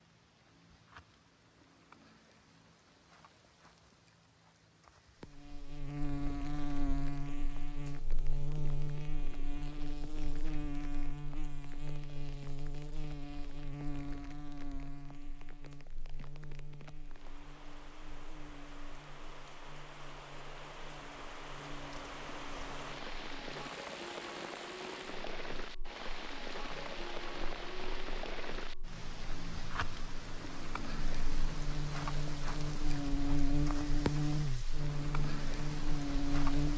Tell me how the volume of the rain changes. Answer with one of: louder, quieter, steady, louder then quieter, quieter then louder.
louder.